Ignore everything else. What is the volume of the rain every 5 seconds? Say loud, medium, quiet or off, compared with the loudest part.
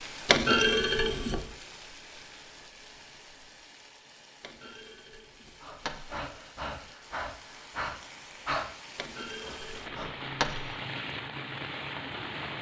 medium, medium, loud.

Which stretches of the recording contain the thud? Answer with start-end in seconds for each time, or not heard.
0.2-1.6, 4.4-6.2, 8.9-10.8.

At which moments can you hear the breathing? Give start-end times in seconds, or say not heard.
5.6-8.7, 9.4-10.3.